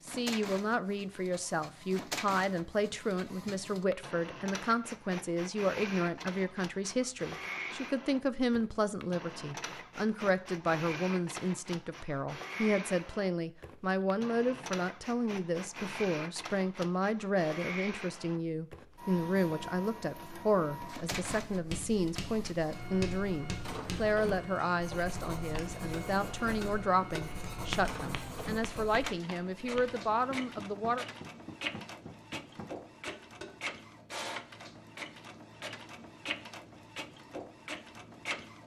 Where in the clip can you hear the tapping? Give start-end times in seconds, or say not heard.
24.9-33.5.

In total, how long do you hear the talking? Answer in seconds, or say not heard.
31 s.